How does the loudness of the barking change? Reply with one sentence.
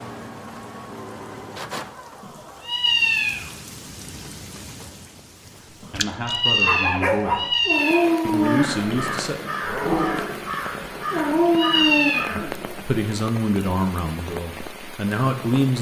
The loudness of the barking goes down, then up.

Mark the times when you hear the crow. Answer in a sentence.
The crow can be heard from 8.3 to 12.7 s.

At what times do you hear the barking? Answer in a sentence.
The barking can be heard from 6.7 to 12.8 s.